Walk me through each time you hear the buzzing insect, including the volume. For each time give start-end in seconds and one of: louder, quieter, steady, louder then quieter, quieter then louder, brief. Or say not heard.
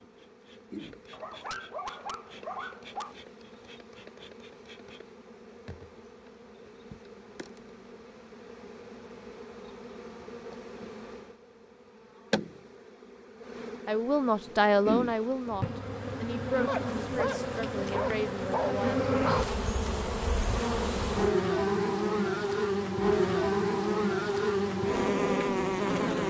0.0-26.2 louder.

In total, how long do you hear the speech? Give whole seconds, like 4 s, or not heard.
5 s.